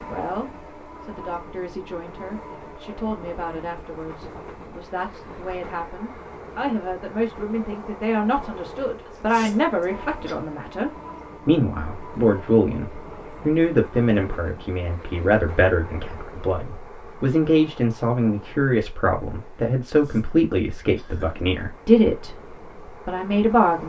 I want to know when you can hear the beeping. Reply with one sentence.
The beeping can't be heard in this clip.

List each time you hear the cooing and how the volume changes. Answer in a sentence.
You can't hear the cooing here.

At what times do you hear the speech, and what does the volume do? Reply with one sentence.
You can hear the speech from 0.1 to 22.4 s, getting louder; and briefly from 23.1 to 23.8 s.